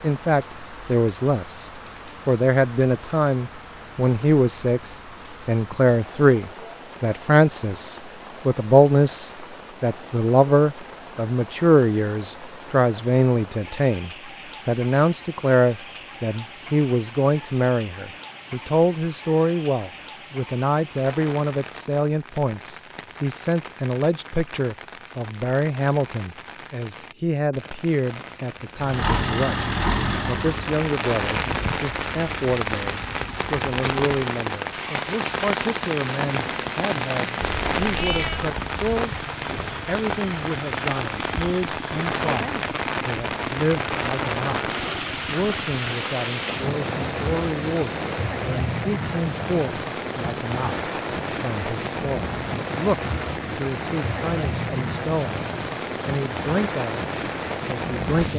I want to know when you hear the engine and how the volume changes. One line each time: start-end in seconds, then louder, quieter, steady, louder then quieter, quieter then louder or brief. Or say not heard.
28.8-48.3 quieter.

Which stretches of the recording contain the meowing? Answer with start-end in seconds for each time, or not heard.
37.4-38.5.